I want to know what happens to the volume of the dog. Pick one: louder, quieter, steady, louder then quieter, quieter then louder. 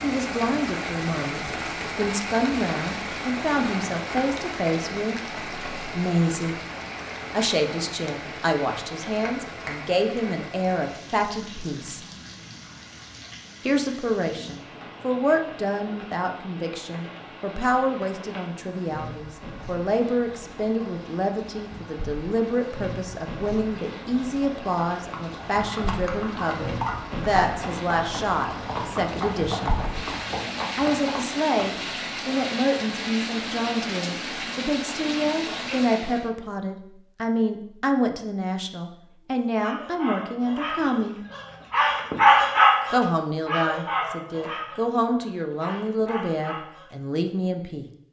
louder then quieter.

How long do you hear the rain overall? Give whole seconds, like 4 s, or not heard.
36 s.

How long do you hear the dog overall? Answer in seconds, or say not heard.
8 s.